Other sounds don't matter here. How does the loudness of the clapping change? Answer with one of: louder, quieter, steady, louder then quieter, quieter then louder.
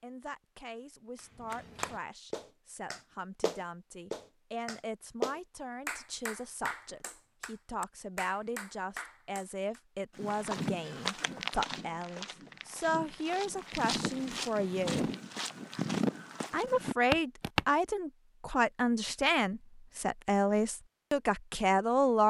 louder then quieter.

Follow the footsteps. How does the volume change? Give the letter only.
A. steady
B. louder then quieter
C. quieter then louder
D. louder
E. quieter
C.